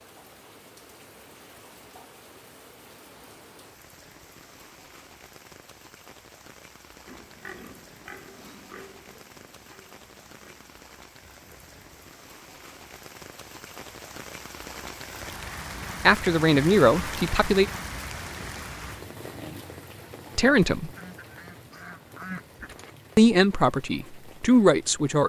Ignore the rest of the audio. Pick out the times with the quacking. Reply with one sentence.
You can hear the quacking from 20.9 to 22.9 s.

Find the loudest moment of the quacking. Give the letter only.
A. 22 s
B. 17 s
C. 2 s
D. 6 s
A.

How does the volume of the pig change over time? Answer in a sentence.
The loudness of the pig goes down.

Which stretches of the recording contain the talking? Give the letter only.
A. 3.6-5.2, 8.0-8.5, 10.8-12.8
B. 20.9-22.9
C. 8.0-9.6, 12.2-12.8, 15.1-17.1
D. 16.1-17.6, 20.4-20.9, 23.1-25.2
D.